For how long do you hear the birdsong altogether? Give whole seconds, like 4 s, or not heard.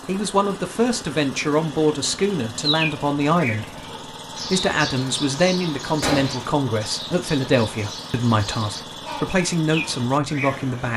8 s.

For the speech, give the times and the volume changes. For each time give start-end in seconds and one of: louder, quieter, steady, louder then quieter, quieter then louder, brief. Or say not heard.
0.1-10.9 steady.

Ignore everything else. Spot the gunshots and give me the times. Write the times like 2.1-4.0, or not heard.
6.0-6.5.